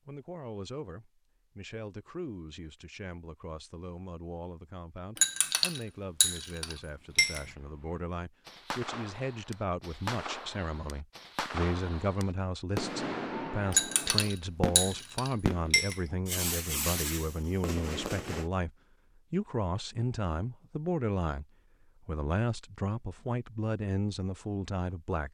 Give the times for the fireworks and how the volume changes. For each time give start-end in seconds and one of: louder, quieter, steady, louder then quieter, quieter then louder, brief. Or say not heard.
7.2-18.5 louder.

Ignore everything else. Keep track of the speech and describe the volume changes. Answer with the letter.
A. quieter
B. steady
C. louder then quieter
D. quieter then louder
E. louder
E.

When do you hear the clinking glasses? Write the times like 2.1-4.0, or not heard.
5.2-7.5, 13.7-16.0.